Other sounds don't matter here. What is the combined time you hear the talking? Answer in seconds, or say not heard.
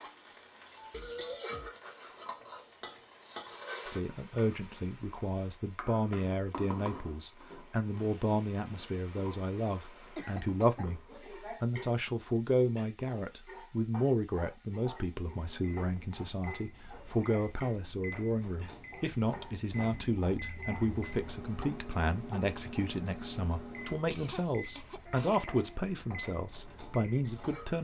24 s.